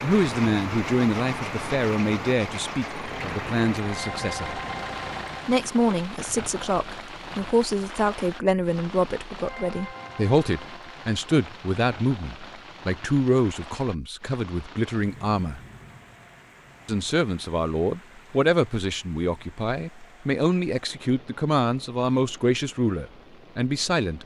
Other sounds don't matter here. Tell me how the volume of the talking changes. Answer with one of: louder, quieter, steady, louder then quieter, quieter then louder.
steady.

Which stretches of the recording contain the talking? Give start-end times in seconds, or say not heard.
0.0-4.6, 5.5-15.6, 16.9-24.2.